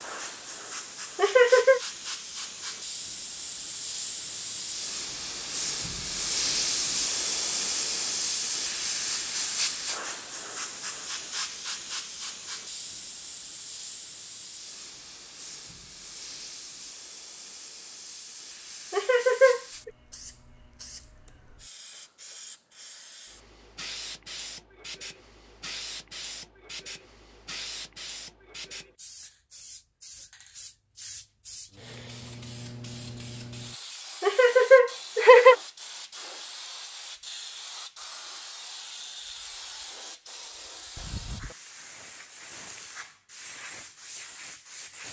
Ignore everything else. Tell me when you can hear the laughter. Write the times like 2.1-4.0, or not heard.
1.1-1.8, 18.9-19.9, 34.2-35.5.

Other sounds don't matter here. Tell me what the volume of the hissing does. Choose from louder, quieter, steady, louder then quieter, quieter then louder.
quieter.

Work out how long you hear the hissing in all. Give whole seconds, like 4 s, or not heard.
45 s.